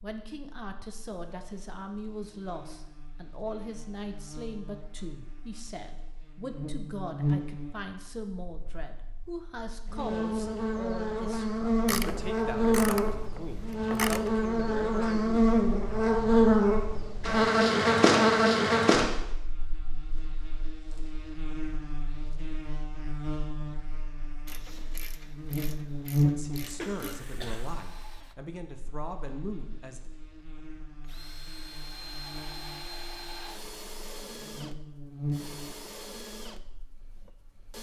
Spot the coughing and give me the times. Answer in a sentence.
The coughing can be heard from 26.8 to 27.6 s.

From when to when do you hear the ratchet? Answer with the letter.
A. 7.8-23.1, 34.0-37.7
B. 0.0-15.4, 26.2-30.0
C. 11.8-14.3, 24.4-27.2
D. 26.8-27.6
C.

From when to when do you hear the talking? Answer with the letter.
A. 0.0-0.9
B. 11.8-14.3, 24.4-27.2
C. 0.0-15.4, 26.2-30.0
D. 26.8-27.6
C.